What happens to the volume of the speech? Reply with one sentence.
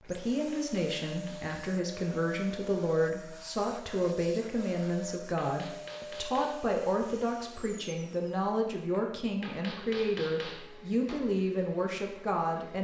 The volume of the speech stays about the same.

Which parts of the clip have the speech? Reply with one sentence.
The speech can be heard from 0.0 to 12.8 s.